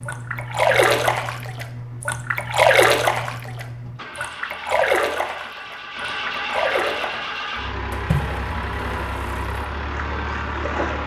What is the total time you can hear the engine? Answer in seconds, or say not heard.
11 s.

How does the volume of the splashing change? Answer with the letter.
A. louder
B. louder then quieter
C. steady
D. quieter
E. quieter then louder
D.